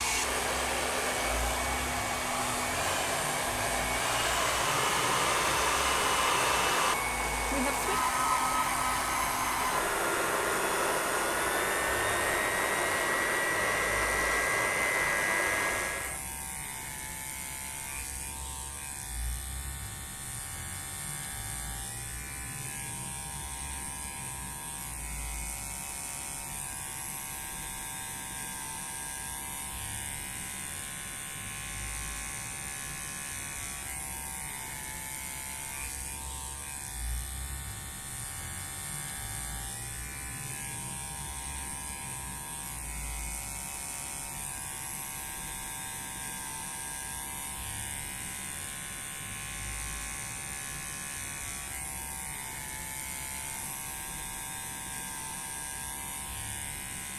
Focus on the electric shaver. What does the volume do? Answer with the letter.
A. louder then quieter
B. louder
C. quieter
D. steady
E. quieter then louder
D.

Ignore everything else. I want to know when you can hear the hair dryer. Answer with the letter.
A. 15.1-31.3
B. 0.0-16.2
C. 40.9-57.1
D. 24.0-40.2
B.